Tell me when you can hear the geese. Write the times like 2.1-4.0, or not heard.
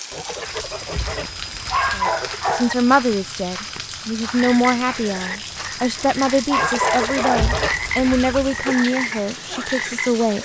0.1-2.5, 6.5-8.8.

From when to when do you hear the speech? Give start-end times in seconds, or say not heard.
1.9-10.3.